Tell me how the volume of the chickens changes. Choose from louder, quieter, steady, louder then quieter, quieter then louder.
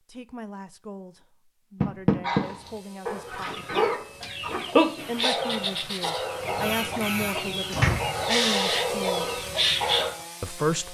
quieter then louder.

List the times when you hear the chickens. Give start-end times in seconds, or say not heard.
3.2-10.1.